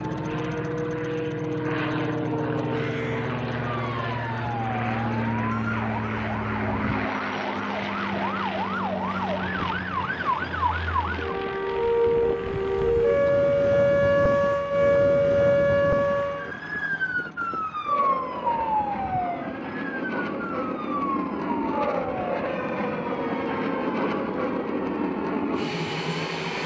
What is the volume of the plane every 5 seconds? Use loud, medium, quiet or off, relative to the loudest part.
loud, loud, medium, medium, loud, loud.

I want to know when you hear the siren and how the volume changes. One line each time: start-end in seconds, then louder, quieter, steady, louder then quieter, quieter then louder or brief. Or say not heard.
0.0-26.6 louder then quieter.